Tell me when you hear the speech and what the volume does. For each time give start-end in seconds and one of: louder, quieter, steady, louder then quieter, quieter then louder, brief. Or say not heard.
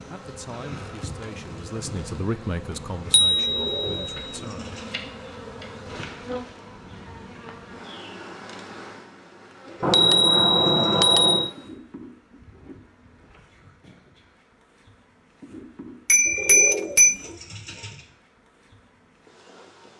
0.1-4.8 louder then quieter.